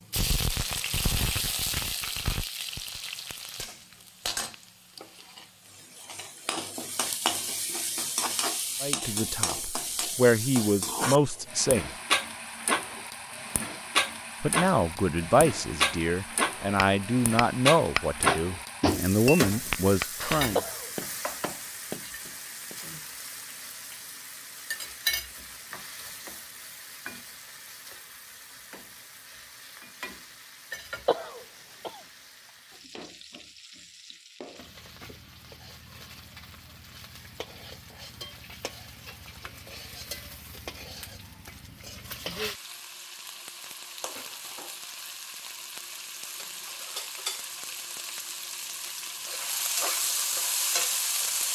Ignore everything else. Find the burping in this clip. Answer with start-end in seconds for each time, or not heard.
not heard.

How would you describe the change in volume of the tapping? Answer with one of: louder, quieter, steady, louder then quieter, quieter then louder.
quieter.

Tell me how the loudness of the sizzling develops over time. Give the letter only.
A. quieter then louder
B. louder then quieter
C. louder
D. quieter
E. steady
A.